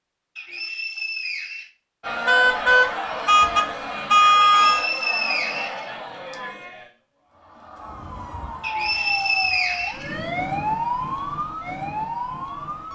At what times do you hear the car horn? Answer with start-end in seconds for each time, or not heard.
2.2-4.8.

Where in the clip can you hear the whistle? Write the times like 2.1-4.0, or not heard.
0.3-1.7, 4.5-6.3, 8.6-10.2.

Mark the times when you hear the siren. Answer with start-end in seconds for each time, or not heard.
7.7-12.8.